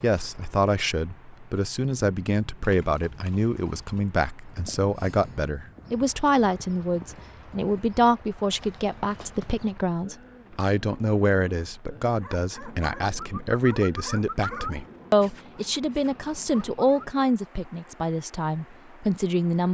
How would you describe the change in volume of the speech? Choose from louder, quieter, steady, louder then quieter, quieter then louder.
steady.